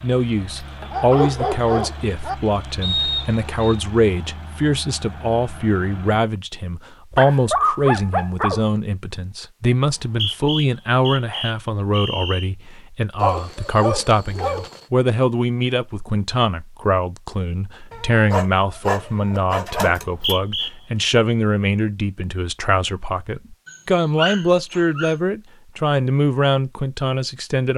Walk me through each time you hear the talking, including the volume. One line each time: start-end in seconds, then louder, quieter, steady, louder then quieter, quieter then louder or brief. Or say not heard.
0.0-27.7 steady.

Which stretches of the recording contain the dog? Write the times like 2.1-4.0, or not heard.
0.8-2.4, 7.1-8.7, 13.2-14.8, 17.9-20.4, 23.6-25.1.